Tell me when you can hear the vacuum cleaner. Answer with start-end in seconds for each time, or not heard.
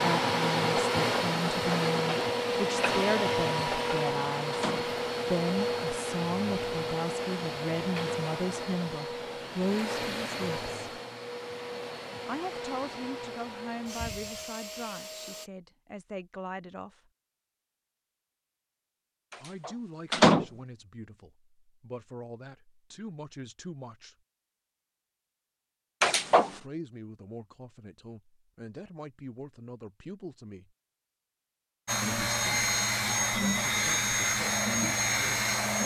0.0-15.5, 31.9-35.8.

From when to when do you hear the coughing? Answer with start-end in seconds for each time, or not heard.
not heard.